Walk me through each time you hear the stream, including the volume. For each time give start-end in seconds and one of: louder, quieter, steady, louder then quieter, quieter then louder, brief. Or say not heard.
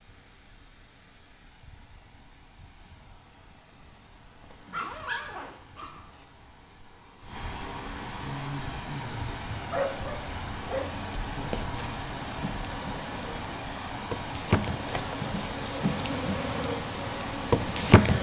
0.0-18.1 louder.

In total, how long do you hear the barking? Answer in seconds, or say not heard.
3 s.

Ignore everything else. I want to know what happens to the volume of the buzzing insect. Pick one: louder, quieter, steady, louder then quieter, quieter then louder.
louder.